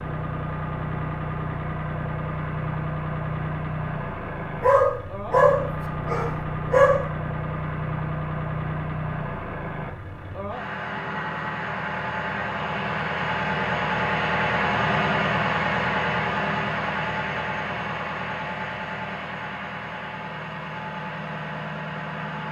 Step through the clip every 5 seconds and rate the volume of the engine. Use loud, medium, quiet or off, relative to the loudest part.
loud, loud, loud, loud, medium.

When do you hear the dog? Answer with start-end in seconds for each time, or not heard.
4.6-7.0.